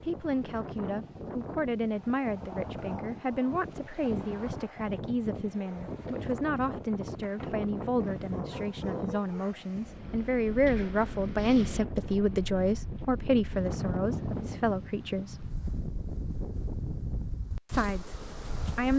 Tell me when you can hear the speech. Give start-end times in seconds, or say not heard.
0.0-15.5, 17.6-18.9.